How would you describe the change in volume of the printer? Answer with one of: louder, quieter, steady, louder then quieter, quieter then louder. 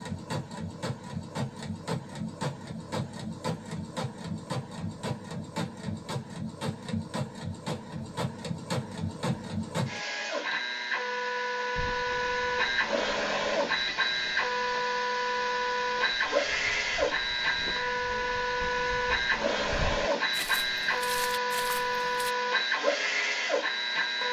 louder.